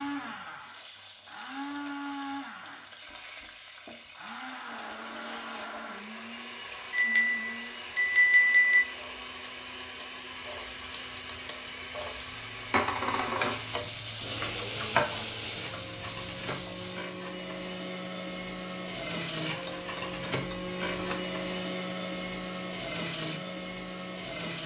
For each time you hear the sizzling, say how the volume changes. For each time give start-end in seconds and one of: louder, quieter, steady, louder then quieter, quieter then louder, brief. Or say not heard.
0.5-17.1 louder.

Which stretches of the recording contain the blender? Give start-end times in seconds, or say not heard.
0.0-24.6.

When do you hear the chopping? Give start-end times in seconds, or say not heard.
not heard.